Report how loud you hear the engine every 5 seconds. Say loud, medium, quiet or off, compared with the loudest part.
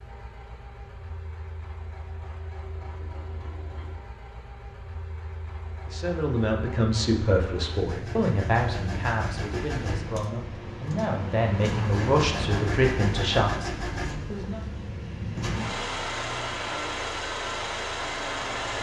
quiet, medium, loud, loud.